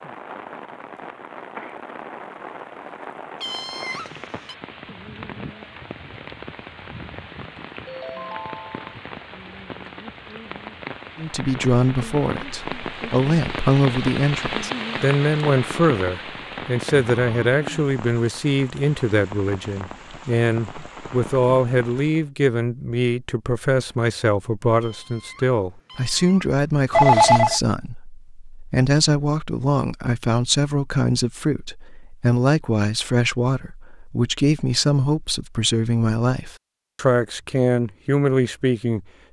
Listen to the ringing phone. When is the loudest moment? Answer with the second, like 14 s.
27 s.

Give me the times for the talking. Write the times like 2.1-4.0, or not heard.
11.2-39.0.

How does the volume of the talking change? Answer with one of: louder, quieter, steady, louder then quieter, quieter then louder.
steady.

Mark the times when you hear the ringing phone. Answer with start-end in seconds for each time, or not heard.
7.8-8.9, 17.1-17.6, 26.9-27.6.